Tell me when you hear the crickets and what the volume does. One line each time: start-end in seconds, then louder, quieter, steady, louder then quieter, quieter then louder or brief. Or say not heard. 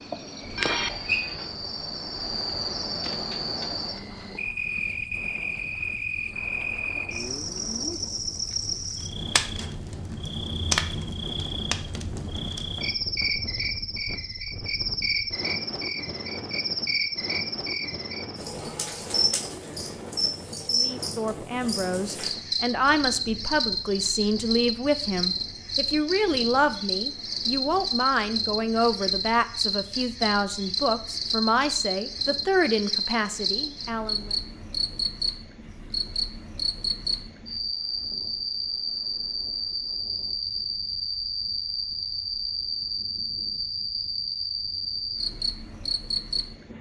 0.0-46.7 steady.